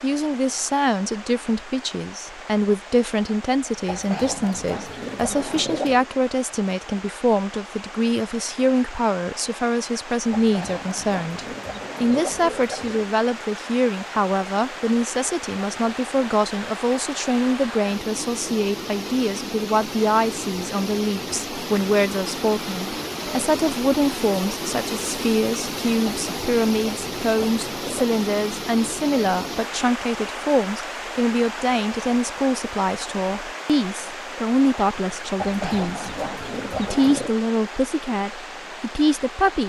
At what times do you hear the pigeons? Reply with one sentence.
The pigeons can be heard from 3.9 to 6.0 s, from 10.3 to 13.1 s, from 26.1 to 28.1 s and from 35.4 to 37.4 s.